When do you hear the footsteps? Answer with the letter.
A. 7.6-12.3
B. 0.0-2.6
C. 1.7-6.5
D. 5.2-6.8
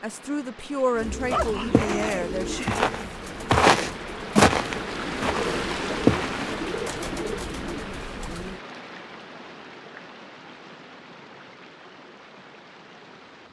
C.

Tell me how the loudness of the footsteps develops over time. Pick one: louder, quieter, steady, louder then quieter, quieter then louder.
louder then quieter.